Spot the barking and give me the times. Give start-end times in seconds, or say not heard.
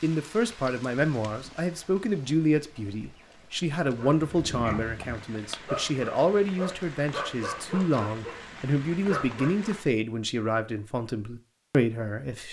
4.0-9.7.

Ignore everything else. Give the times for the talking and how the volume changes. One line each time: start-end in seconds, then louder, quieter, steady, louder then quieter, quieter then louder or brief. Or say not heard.
0.0-12.4 steady.